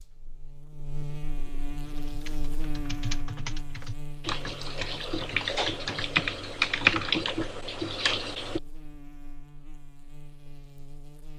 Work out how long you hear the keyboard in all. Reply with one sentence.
You can hear the keyboard for 7 seconds altogether.